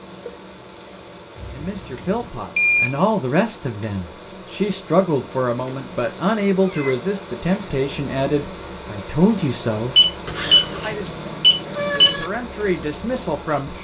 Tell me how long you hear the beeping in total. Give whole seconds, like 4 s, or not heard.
3 s.